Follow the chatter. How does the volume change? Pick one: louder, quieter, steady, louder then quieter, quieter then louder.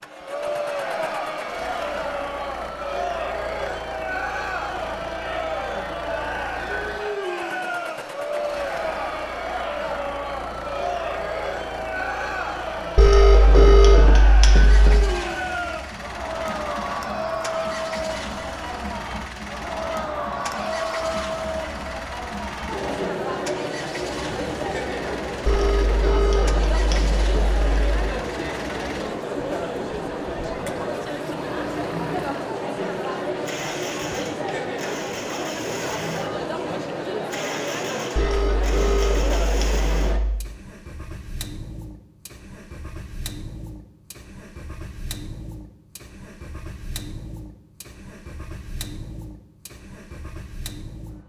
steady.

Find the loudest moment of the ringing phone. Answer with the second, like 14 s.
14 s.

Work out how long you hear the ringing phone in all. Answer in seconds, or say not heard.
7 s.